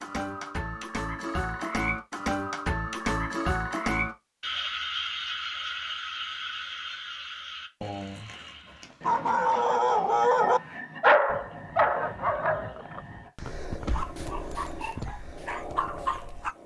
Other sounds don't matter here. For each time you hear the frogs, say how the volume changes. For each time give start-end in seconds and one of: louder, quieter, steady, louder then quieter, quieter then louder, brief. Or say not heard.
0.0-16.6 quieter.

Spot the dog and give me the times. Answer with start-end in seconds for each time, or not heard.
9.0-16.6.